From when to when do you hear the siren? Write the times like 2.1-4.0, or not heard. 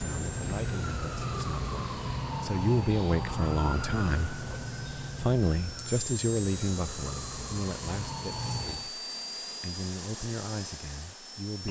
0.0-8.9.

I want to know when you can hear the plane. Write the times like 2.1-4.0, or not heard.
0.0-11.6.